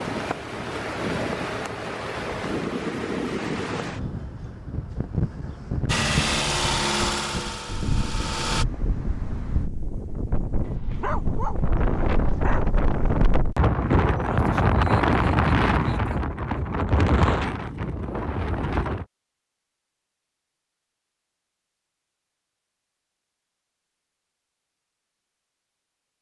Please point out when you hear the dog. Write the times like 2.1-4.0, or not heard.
10.7-13.2.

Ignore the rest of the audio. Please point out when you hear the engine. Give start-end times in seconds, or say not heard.
5.8-8.7.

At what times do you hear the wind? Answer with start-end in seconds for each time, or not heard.
0.0-19.1.